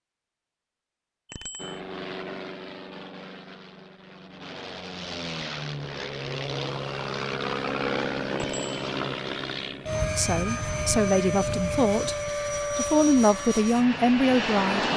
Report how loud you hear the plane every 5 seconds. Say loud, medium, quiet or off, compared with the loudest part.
medium, loud, loud.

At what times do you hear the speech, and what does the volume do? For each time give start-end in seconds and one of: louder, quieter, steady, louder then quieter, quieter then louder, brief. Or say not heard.
10.2-14.9 quieter then louder.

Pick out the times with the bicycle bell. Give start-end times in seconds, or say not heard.
1.3-1.8, 8.3-8.8.